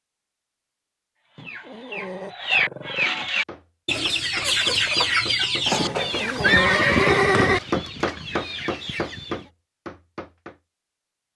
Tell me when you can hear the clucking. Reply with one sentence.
You can hear the clucking from 1.3 to 9.4 s.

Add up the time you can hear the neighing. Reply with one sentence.
The neighing can be heard for 2 seconds in total.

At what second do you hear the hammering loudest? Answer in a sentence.
The volume of the hammering peaks at 8 seconds.